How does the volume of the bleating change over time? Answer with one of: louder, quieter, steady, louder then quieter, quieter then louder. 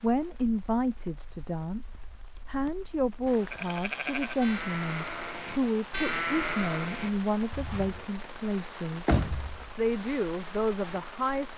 louder then quieter.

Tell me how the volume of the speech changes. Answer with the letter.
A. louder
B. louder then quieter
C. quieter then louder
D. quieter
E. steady
E.